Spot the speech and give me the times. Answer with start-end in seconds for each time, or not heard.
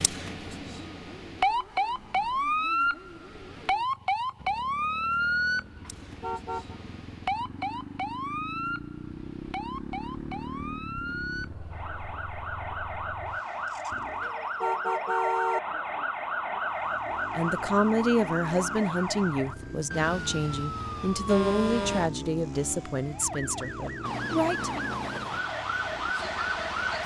17.3-24.9.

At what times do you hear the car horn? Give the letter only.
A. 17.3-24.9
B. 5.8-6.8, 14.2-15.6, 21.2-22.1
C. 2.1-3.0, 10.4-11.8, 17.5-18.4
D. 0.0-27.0
B.